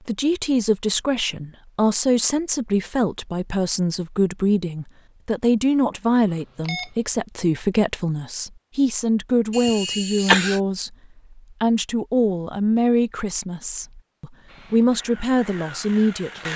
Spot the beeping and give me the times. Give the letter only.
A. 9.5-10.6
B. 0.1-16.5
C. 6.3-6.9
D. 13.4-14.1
C.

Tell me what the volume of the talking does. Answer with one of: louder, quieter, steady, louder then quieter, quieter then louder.
steady.